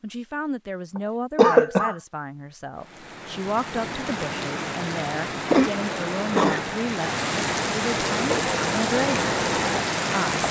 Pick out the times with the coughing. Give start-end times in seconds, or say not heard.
0.9-1.9, 5.5-6.6.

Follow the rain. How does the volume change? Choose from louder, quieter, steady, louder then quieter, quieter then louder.
louder.